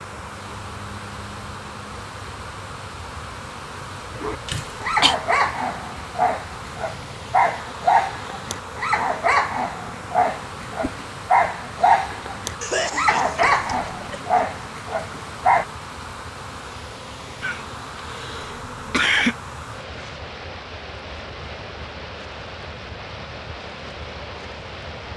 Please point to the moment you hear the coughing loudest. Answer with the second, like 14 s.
19 s.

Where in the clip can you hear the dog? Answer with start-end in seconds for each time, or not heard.
4.1-15.7.